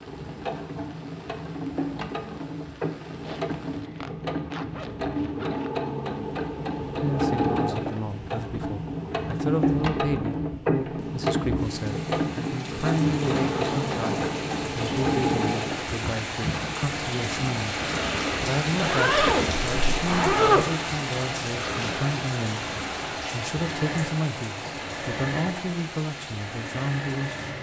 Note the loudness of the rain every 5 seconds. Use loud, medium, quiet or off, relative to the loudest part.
quiet, quiet, medium, loud, loud, medium.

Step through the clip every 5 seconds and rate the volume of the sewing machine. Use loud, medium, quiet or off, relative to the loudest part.
medium, loud, loud, loud, medium, medium.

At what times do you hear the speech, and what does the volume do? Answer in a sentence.
You can hear the speech from 7.0 to 27.5 s, at a steady volume.